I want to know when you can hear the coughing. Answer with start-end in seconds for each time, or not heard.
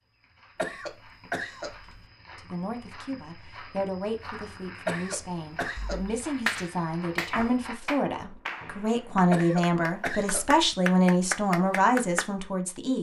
0.6-1.8, 4.8-6.0, 9.3-10.4.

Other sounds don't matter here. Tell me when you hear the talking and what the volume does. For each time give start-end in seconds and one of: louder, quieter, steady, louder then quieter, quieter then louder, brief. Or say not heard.
2.4-12.9 louder.